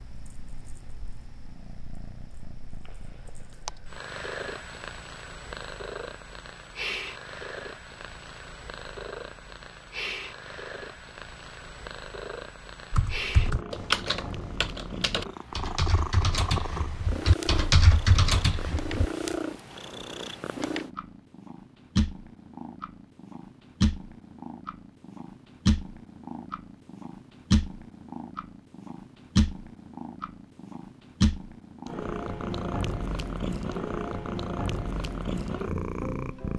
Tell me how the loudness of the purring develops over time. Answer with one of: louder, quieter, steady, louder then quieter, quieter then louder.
louder.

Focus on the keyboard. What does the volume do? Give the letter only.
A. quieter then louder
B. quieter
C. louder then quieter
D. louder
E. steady
A.